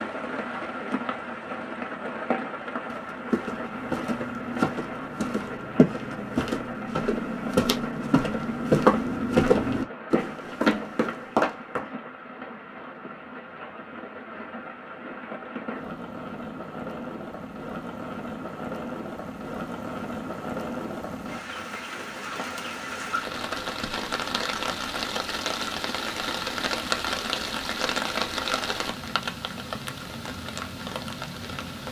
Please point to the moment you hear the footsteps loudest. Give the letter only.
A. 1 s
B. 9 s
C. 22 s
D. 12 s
B.